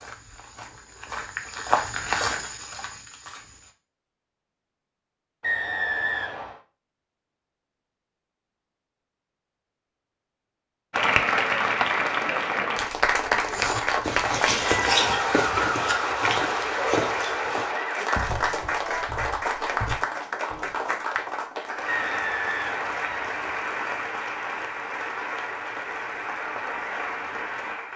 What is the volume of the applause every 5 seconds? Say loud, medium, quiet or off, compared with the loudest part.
off, off, loud, loud, medium, medium.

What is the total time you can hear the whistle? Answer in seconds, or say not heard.
3 s.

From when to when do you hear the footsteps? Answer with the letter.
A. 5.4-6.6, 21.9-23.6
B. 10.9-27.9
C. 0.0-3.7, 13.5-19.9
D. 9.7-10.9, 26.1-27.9
C.